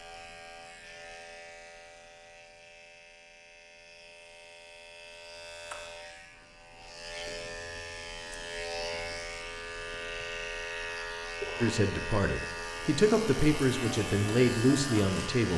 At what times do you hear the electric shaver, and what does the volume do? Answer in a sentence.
You can hear the electric shaver from 0.0 to 15.5 s, getting louder.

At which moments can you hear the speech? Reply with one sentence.
The speech can be heard from 11.6 to 15.5 s.